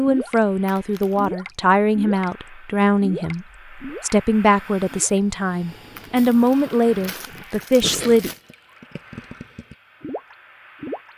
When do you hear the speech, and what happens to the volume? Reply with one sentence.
You can hear the speech from 0.0 to 8.3 s, at a steady volume.